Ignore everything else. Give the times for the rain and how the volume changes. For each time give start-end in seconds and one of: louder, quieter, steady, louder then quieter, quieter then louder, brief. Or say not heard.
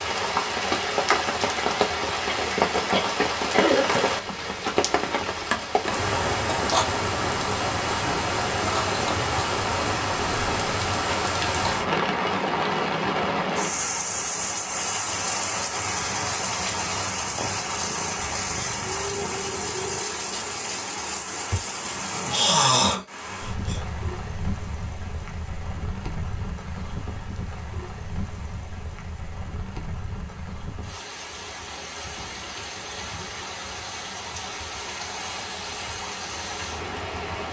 0.0-37.4 quieter.